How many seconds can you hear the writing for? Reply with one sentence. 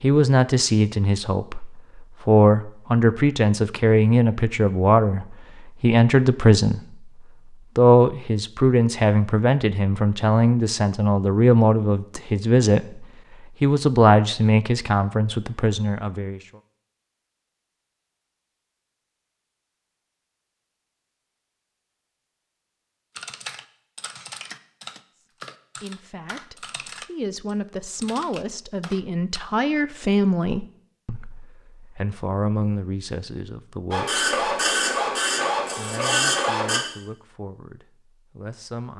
The writing can't be heard in this clip.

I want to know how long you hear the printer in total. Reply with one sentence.
You can hear the printer for 3 seconds altogether.